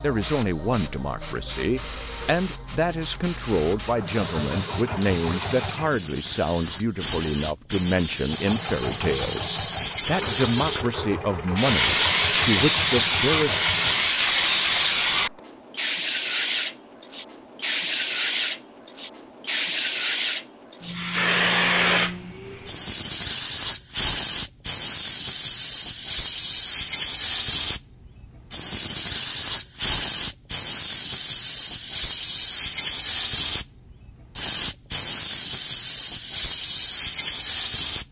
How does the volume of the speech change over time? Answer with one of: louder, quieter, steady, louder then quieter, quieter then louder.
steady.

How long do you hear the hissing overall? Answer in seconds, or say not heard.
38 s.